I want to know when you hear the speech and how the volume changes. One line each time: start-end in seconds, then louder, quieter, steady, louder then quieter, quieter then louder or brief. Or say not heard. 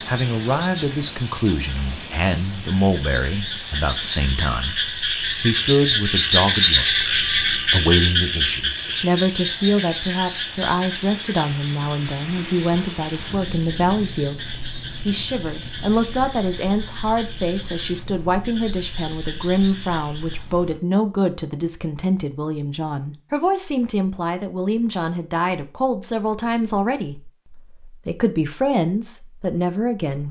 0.1-30.2 steady.